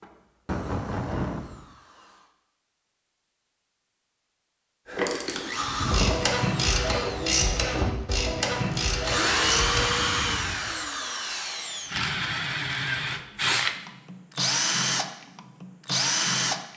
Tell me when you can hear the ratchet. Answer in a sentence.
You can hear the ratchet from 4.8 to 9.9 s.